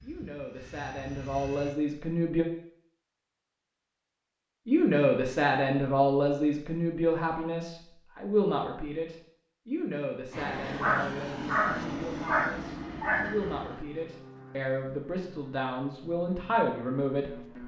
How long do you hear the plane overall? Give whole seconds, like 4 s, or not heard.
9 s.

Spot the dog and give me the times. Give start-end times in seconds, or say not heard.
10.8-13.3.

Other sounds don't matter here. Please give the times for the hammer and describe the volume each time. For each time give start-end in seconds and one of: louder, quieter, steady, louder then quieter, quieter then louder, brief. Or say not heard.
not heard.